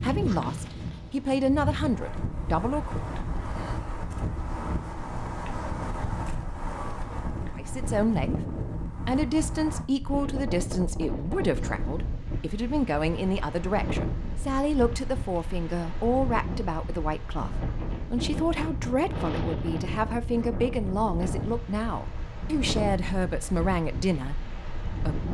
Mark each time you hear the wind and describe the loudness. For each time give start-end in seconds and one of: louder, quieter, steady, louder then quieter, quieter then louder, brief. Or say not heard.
0.0-25.2 steady.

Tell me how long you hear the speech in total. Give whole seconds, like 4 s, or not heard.
20 s.